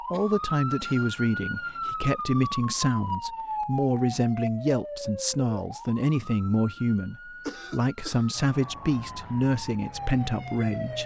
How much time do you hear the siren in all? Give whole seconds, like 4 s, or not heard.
11 s.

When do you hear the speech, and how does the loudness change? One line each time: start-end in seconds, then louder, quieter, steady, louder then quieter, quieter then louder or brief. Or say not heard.
0.1-11.0 steady.